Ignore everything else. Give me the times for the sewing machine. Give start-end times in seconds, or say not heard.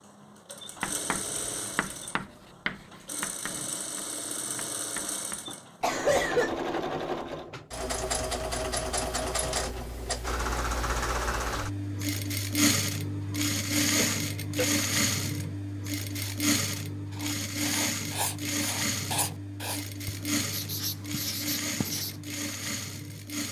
0.0-23.4.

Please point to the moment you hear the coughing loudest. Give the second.
6 s.